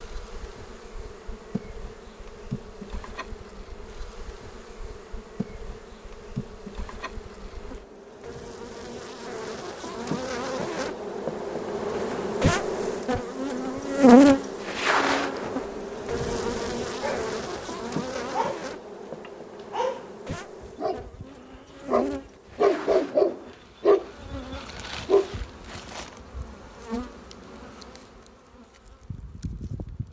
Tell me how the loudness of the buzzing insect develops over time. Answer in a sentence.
The loudness of the buzzing insect goes up, then down.